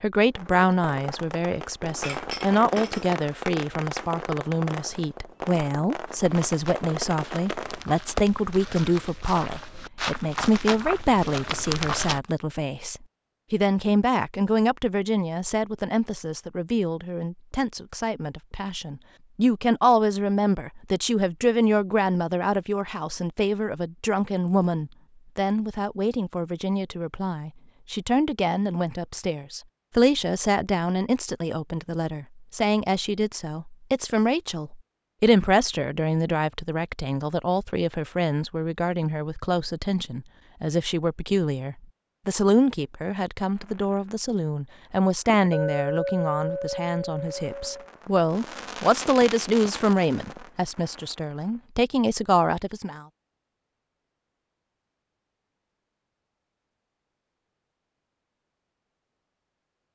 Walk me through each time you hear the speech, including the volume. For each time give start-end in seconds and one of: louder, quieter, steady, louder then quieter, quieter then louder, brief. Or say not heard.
0.0-53.0 steady.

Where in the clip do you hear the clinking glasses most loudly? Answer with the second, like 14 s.
46 s.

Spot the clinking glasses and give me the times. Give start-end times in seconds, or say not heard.
2.0-3.1, 45.5-47.9.